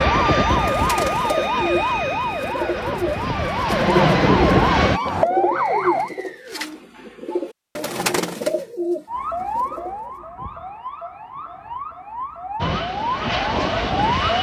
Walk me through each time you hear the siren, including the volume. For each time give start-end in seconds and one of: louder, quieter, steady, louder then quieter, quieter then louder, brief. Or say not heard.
0.0-6.1 quieter then louder
9.1-14.3 quieter then louder.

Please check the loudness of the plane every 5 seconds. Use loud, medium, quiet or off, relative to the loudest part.
loud, off, loud.